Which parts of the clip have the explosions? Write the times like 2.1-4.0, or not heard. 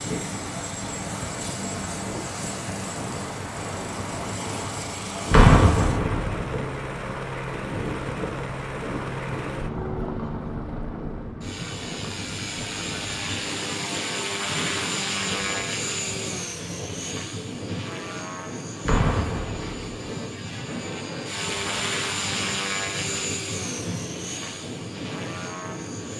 5.3-6.4, 18.9-19.9.